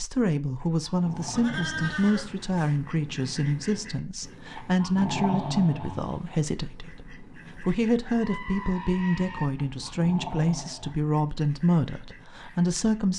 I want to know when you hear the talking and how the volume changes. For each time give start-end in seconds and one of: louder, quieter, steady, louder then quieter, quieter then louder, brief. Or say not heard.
0.0-13.1 steady.